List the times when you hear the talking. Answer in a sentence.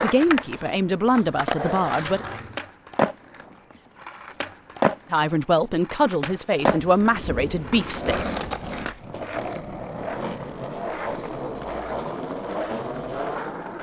The talking can be heard from 0.0 to 2.2 s and from 5.1 to 8.2 s.